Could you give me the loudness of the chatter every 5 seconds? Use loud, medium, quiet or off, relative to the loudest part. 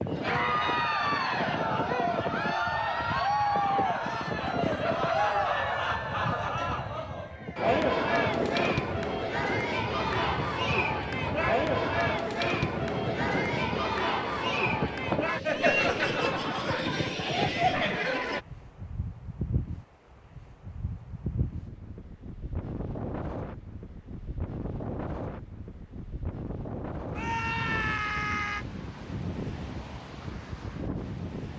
loud, loud, loud, loud, off, off, off.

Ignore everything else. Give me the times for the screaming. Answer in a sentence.
You can hear the screaming from 27.1 to 28.6 s.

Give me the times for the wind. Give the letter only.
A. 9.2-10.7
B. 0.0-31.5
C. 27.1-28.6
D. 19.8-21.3
B.